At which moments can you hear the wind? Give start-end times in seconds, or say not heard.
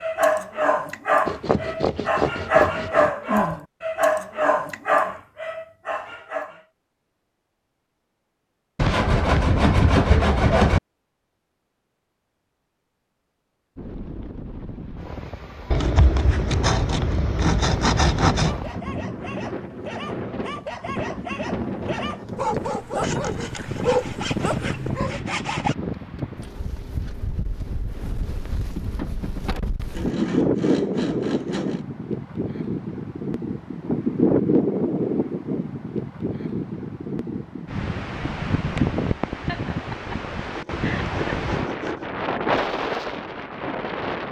13.8-44.2.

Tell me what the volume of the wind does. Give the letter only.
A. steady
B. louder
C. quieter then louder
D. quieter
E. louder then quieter
B.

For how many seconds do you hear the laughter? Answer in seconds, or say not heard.
2 s.